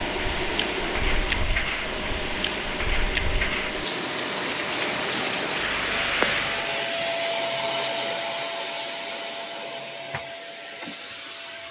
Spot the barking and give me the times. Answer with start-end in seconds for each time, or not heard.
not heard.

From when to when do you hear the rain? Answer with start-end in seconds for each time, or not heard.
0.0-6.8.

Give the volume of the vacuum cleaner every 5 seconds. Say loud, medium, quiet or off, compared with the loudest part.
loud, loud, medium.